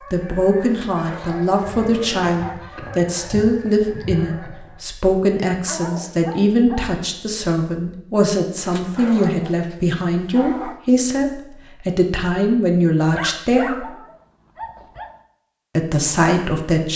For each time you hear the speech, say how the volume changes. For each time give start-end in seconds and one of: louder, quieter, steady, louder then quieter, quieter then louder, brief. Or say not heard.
0.1-13.8 steady
15.8-16.9 brief.